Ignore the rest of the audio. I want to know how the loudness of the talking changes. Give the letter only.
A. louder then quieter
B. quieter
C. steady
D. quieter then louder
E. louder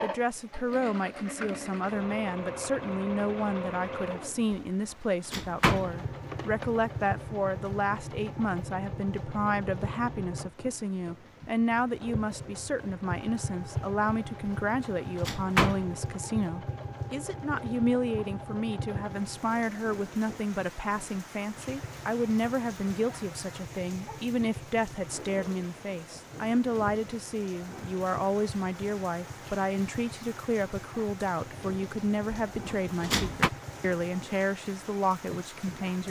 C.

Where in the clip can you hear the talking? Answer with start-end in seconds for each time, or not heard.
0.0-36.0.